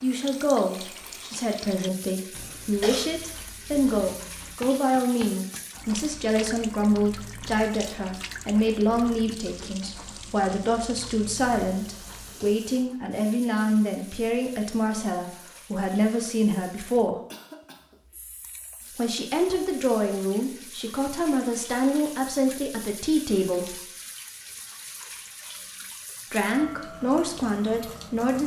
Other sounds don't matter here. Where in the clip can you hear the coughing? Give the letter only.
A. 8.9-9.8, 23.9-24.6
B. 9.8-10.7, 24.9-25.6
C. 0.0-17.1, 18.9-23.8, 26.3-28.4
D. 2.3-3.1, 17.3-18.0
D.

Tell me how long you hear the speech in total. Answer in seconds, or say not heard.
24 s.